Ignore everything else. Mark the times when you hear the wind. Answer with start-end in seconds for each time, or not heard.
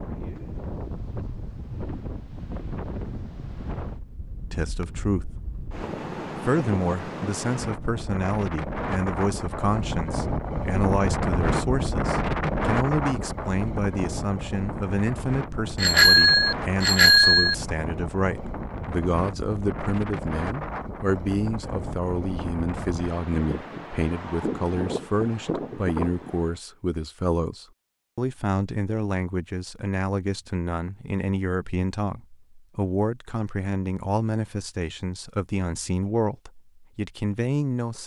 0.0-26.6.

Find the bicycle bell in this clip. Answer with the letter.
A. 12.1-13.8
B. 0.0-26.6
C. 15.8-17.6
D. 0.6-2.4
C.